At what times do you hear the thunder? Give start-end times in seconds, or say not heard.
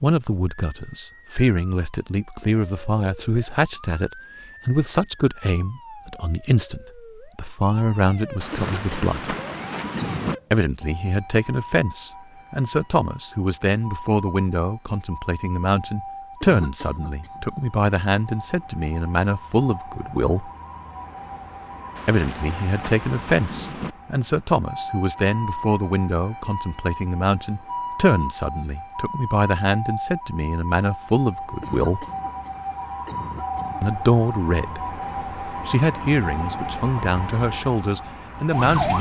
8.4-10.3, 21.9-23.9.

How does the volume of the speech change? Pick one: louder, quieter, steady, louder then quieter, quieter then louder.
steady.